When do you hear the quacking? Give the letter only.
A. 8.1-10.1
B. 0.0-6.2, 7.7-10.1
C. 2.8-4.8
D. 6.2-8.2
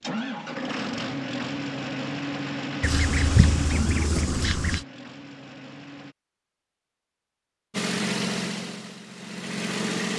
C.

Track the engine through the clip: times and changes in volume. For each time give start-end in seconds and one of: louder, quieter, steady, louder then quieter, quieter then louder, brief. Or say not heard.
0.0-6.2 quieter
7.7-10.1 brief.